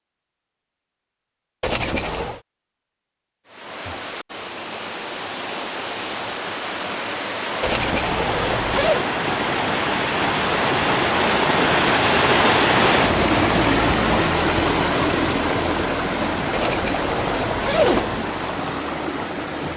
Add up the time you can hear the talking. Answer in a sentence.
The talking can't be heard in this clip.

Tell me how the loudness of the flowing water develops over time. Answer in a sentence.
The volume of the flowing water goes up, then down.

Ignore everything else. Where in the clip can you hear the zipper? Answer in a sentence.
The zipper can be heard from 1.6 to 2.4 s, from 7.6 to 9.1 s and from 16.5 to 18.2 s.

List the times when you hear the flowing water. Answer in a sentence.
You can hear the flowing water from 3.5 to 19.7 s.